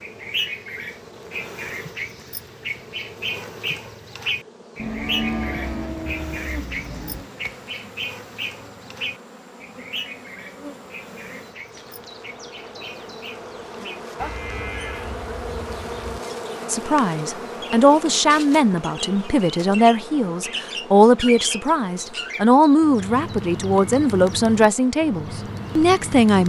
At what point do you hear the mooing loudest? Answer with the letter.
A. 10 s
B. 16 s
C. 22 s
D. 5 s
D.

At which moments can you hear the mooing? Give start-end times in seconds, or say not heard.
4.8-7.2, 14.2-16.2.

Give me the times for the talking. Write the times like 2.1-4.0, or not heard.
16.6-26.4.